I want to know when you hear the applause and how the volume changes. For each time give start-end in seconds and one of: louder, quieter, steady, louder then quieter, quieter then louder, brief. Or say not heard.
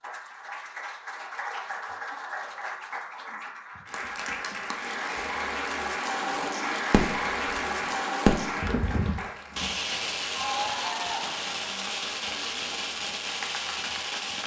0.0-14.4 louder then quieter.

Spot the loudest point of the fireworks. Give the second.
8 s.